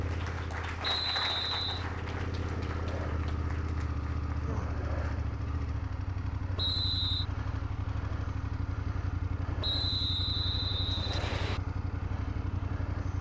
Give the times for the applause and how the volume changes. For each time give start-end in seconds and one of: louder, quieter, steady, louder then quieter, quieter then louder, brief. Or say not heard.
0.0-5.2 quieter.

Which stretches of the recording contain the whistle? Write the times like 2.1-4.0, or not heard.
0.8-1.9, 6.5-7.2, 9.6-11.6.